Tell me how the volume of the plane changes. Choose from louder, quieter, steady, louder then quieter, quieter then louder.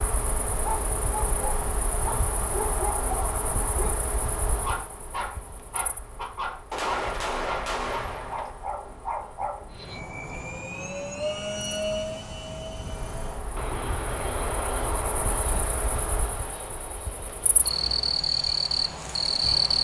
quieter.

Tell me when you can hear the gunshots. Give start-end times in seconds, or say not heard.
6.7-8.5.